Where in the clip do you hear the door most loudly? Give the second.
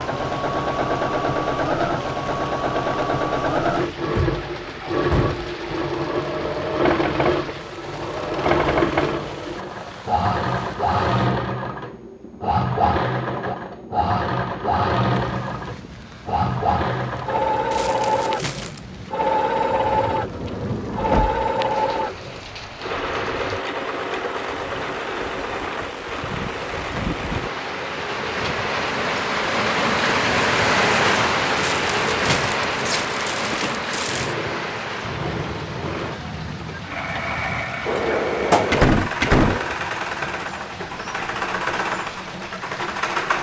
39 s.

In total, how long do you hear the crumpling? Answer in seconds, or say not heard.
4 s.